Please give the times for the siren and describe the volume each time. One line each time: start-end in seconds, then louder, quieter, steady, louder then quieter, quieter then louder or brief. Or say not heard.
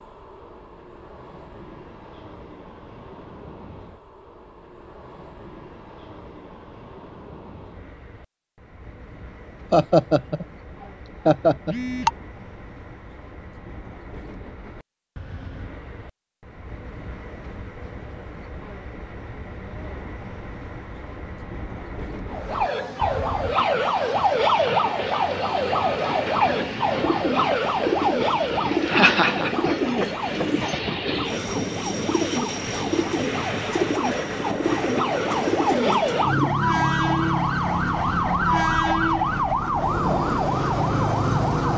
22.3-41.7 quieter then louder.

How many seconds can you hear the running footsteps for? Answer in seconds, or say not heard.
not heard.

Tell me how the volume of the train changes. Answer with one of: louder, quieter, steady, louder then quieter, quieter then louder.
louder.